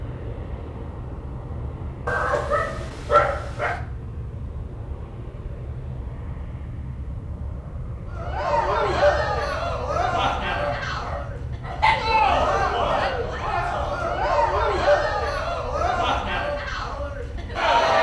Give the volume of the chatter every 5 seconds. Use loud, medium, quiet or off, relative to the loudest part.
off, loud, loud, loud.